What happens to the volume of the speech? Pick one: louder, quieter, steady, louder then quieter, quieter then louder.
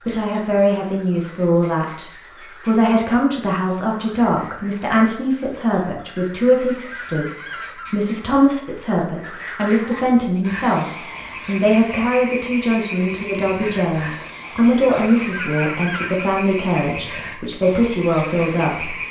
steady.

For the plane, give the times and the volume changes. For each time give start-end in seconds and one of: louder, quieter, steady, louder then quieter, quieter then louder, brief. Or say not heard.
not heard.